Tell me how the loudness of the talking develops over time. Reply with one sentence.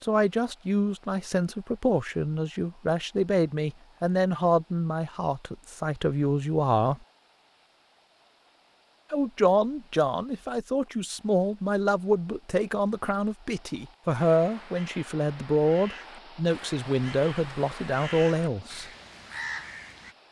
The volume of the talking stays about the same.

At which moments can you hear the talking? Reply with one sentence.
You can hear the talking from 0.0 to 7.0 s and from 9.1 to 18.9 s.